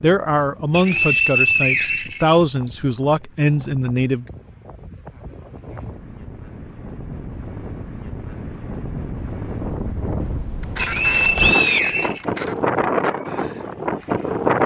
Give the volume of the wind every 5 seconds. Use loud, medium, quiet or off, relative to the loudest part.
quiet, medium, loud.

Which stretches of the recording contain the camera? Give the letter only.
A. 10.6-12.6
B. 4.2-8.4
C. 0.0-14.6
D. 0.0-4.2
A.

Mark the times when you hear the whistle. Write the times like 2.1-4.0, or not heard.
0.7-2.7, 10.8-12.2.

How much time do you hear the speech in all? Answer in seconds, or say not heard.
4 s.